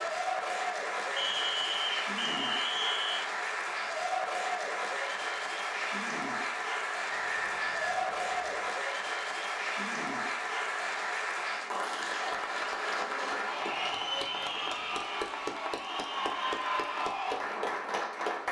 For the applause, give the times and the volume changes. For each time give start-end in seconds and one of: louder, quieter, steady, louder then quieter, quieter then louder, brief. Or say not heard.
0.0-18.4 steady.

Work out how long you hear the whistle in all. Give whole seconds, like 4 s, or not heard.
5 s.